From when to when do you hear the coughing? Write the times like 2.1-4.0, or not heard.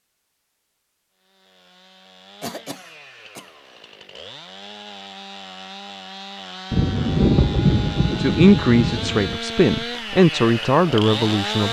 2.4-3.5.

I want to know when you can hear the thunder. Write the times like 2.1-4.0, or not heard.
6.7-9.4.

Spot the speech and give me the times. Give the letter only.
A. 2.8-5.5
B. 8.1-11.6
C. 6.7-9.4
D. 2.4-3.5
B.